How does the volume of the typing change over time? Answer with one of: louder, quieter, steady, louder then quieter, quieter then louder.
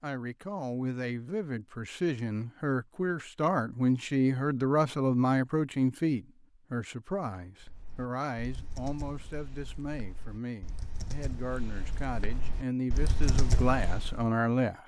quieter then louder.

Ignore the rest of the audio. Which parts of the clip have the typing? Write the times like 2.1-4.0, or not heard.
7.6-14.2.